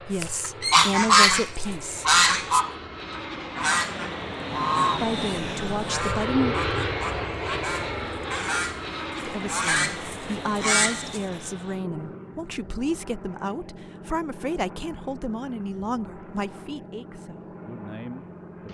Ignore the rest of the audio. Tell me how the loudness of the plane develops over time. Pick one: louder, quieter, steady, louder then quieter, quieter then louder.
louder then quieter.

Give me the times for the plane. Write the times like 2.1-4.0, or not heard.
0.0-18.6.